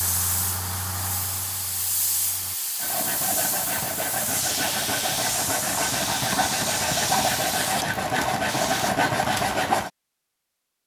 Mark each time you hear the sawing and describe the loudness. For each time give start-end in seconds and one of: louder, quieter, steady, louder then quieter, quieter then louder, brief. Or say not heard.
2.8-9.9 louder.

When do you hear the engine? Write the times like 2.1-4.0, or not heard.
0.0-2.5.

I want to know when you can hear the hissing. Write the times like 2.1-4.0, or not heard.
0.0-8.9.